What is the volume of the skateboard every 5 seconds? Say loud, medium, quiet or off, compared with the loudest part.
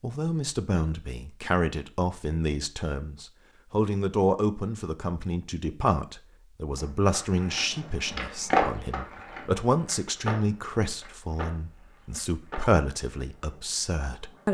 off, loud, medium.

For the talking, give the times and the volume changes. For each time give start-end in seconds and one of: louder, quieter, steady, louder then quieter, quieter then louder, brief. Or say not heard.
0.0-14.4 steady.